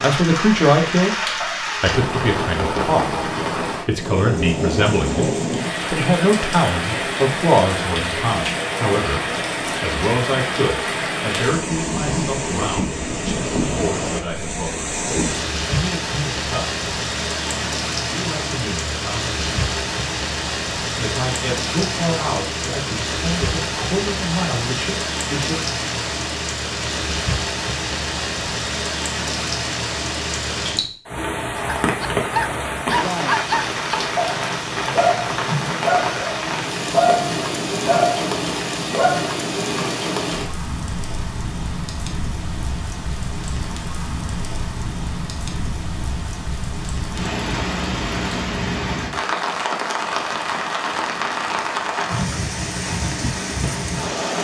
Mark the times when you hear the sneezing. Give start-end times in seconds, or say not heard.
not heard.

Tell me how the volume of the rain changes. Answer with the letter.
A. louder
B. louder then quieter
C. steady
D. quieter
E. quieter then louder
C.